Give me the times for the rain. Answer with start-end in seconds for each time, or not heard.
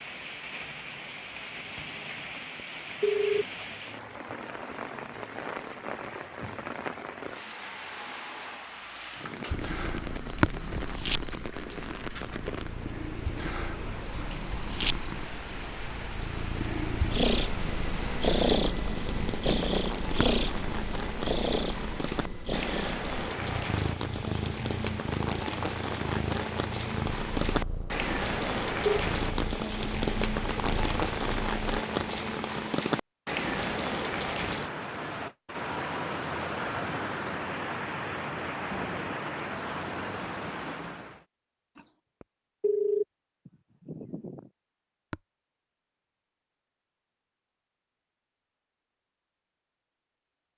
0.0-41.2.